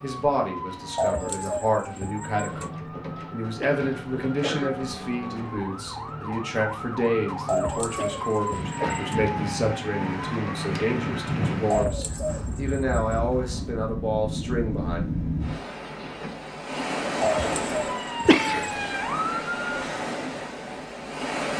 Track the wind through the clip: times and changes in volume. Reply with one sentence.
The wind can be heard from 8.4 to 21.5 s, at a steady volume.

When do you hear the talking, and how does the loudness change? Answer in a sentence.
You can hear the talking from 0.0 to 15.1 s, at a steady volume.